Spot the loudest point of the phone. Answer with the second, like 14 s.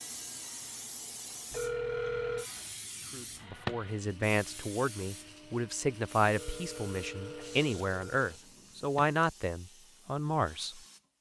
2 s.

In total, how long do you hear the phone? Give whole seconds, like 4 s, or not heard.
3 s.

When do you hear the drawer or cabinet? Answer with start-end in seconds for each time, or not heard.
3.0-3.9, 8.3-9.2.